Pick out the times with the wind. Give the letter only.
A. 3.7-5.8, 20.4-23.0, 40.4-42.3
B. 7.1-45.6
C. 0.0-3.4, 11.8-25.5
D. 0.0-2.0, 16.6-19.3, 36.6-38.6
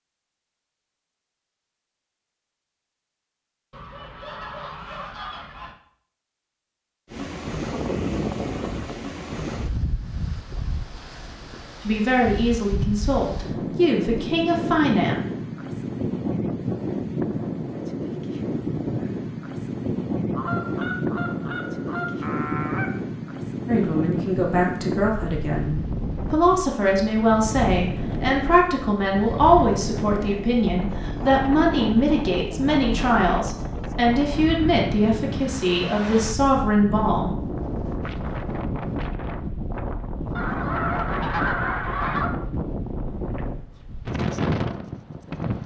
B.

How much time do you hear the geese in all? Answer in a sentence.
You can hear the geese for 7 seconds altogether.